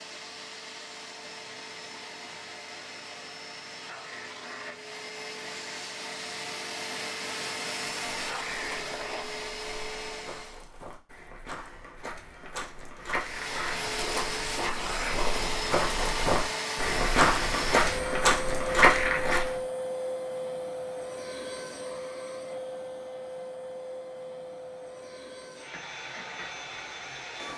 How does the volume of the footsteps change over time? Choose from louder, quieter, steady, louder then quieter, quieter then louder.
louder.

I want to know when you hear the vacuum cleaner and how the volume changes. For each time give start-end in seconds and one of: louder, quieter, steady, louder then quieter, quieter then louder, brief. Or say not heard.
0.0-10.7 louder
13.2-27.5 quieter.